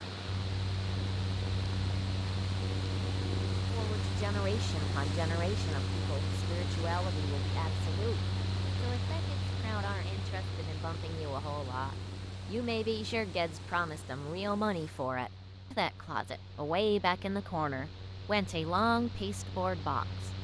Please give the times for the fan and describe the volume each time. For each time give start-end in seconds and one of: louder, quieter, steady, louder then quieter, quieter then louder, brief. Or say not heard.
0.0-20.4 quieter.